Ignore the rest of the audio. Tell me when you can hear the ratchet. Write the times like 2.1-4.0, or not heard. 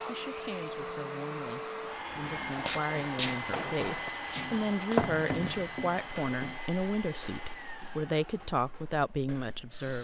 not heard.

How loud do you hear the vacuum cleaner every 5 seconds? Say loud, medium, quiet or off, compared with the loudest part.
loud, medium.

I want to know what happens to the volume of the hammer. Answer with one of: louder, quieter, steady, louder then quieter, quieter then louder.
louder then quieter.